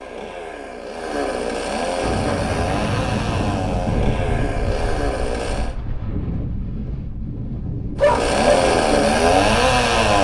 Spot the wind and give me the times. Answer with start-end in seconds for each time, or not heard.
2.0-10.1.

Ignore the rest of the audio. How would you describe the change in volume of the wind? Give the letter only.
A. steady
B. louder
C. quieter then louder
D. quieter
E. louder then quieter
D.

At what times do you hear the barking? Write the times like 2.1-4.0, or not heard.
8.0-8.7.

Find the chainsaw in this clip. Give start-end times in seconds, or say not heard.
0.0-5.8, 8.0-10.1.